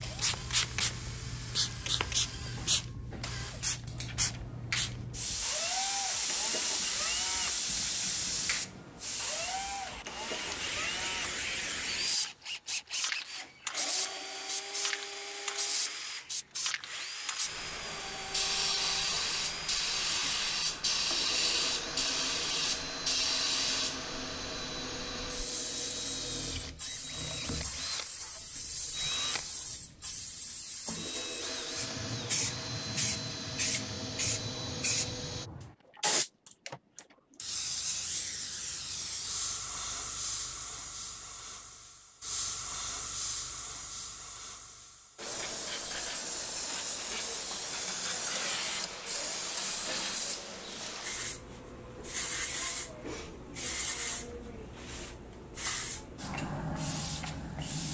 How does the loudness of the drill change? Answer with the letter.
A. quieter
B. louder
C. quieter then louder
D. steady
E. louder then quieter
D.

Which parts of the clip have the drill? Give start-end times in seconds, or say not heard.
0.0-35.5.